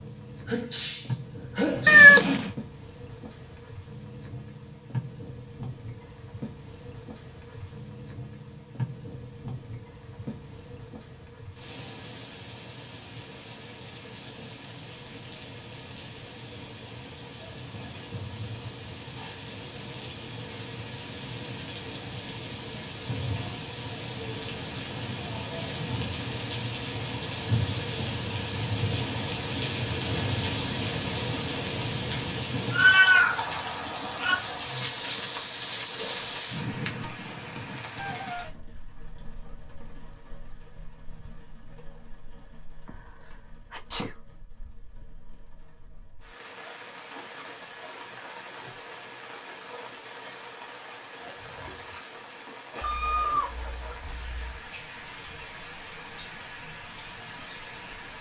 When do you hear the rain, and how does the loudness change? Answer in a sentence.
The rain can be heard from 0.0 to 58.1 s, getting louder then quieter.